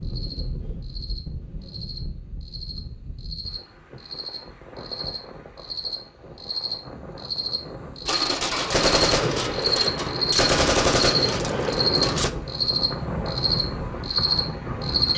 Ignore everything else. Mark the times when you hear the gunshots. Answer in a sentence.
The gunshots can be heard from 8.1 to 12.3 s.